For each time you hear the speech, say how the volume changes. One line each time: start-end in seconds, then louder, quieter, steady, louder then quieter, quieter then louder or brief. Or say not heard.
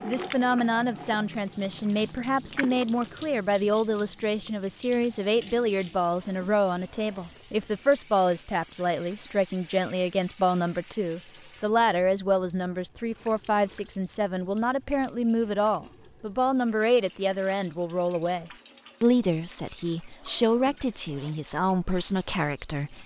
0.0-23.0 steady.